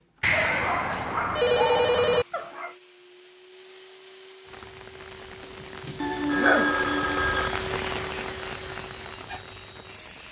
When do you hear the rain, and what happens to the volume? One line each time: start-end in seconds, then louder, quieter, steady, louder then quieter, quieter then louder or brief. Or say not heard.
4.5-10.2 louder then quieter.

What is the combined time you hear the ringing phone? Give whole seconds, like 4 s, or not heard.
4 s.